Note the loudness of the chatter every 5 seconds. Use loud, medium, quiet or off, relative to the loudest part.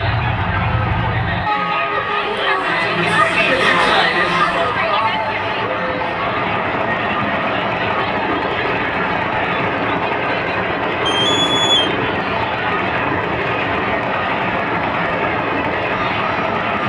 loud, medium, medium, medium.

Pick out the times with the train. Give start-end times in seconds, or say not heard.
0.0-16.8.